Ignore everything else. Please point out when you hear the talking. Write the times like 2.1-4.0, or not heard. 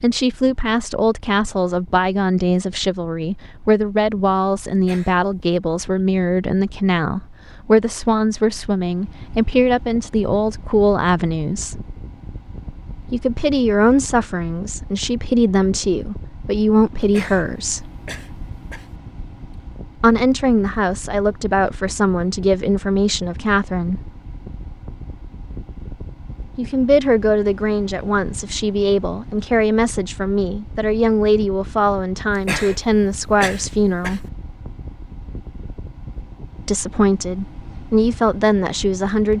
0.0-11.8, 13.1-17.9, 20.0-24.1, 26.6-34.2, 36.6-39.3.